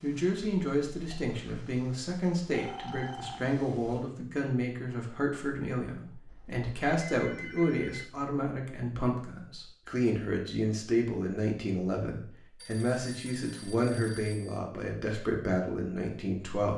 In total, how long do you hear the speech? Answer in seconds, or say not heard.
17 s.